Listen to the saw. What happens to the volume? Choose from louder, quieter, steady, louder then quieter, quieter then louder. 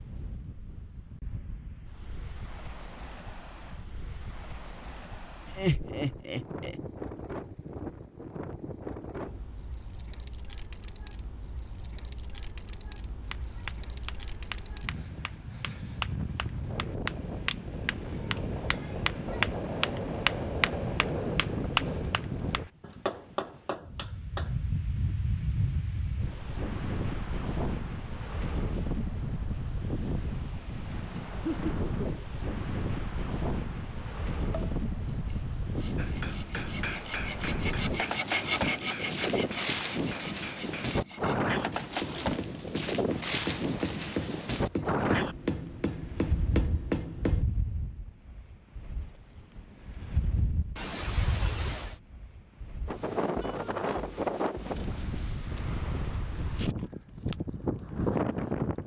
louder then quieter.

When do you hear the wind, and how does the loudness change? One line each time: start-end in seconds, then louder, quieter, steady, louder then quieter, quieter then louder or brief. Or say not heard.
0.0-58.8 louder.